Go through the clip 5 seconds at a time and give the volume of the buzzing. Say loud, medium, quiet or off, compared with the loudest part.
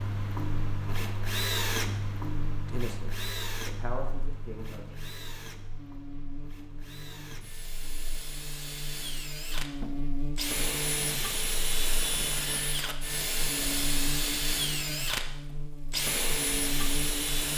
loud, medium, loud, loud.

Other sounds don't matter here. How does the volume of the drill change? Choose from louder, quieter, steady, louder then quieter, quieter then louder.
quieter then louder.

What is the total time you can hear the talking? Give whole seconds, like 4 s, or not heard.
2 s.